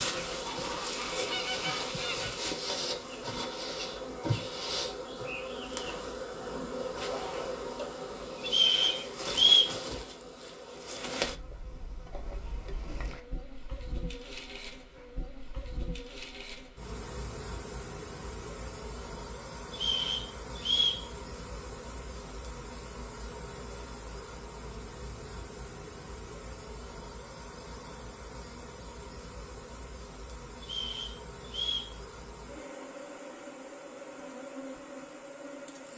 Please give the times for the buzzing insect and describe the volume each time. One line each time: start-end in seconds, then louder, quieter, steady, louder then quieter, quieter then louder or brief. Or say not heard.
0.0-35.9 quieter.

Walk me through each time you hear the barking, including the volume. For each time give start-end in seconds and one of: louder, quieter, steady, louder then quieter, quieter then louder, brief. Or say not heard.
not heard.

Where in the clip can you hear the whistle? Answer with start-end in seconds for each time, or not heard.
8.4-9.7, 19.7-21.1, 30.6-31.9.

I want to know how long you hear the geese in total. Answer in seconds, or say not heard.
2 s.